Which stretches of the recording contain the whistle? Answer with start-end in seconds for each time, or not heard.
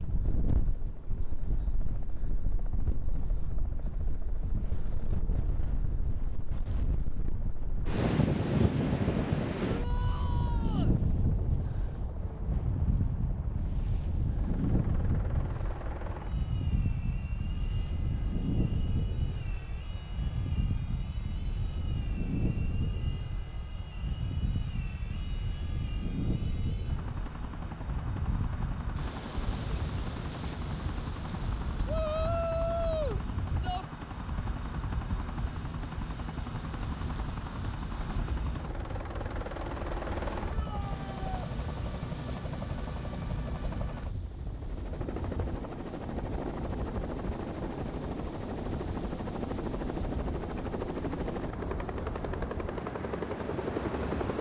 not heard.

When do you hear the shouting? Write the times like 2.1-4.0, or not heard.
9.6-10.9, 31.9-33.9, 40.5-41.5.